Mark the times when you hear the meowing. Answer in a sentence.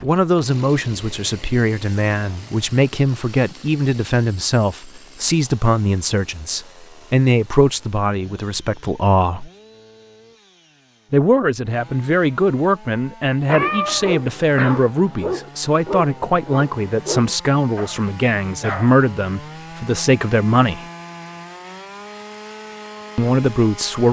You can hear the meowing from 13.4 to 14.9 s.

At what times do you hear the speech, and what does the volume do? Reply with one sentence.
You can hear the speech from 0.0 to 9.5 s, at a steady volume; from 11.1 to 20.9 s, at a steady volume; and briefly from 23.1 to 24.0 s.